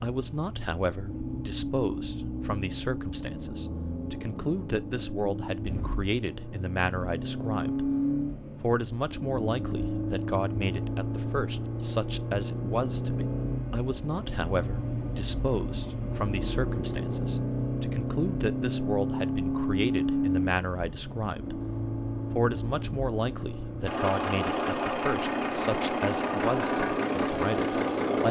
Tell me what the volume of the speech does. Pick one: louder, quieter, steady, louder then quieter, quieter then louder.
steady.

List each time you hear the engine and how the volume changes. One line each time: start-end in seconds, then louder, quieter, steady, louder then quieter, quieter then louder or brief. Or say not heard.
0.0-28.2 louder.